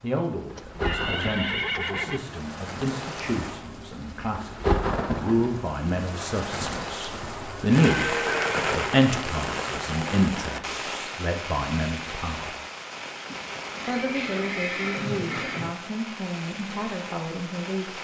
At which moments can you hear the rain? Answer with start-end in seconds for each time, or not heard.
0.0-17.9.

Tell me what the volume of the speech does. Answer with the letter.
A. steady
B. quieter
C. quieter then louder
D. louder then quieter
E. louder
D.